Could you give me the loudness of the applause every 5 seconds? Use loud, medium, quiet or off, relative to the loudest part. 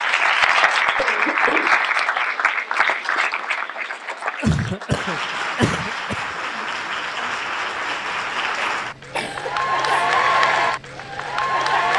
loud, medium, loud.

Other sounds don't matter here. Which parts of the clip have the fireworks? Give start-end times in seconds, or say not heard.
not heard.